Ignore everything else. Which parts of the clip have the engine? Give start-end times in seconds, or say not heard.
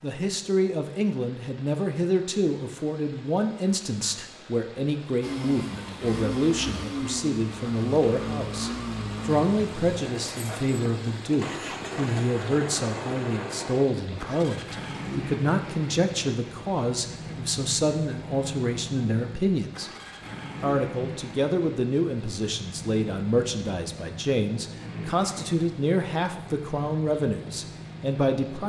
5.2-28.6.